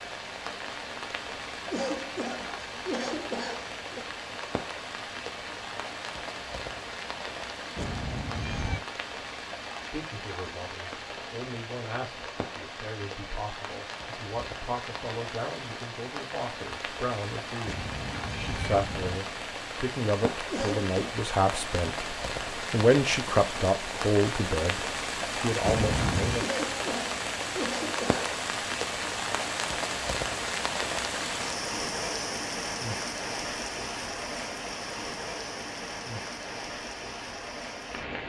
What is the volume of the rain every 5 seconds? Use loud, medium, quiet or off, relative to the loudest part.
medium, medium, medium, medium, loud, loud, loud, medium.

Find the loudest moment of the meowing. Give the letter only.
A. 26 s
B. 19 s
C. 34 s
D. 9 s
A.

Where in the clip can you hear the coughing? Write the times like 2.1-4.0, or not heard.
1.7-4.0, 20.5-21.1, 26.4-28.2.